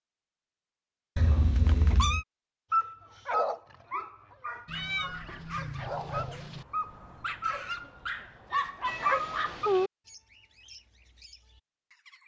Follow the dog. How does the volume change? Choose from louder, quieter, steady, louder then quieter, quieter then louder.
quieter then louder.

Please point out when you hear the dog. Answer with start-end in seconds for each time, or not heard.
2.7-9.7.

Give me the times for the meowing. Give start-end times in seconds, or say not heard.
1.1-2.2, 4.7-6.7, 8.8-9.9.